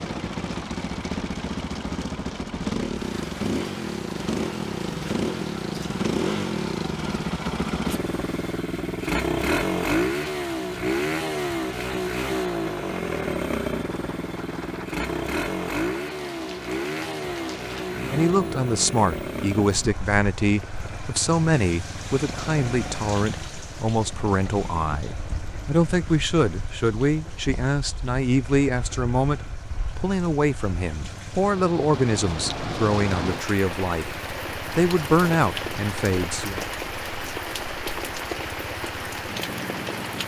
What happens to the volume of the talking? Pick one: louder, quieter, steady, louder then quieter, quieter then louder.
steady.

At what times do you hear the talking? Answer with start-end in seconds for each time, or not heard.
18.1-36.6.